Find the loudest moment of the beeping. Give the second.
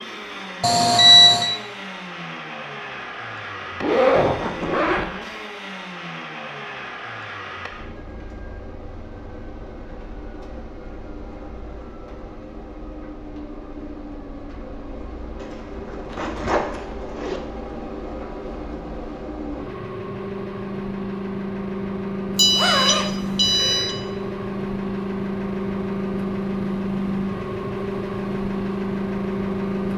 1 s.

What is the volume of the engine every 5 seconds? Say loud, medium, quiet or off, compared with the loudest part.
medium, medium, quiet, medium, loud, loud.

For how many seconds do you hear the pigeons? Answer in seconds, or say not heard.
not heard.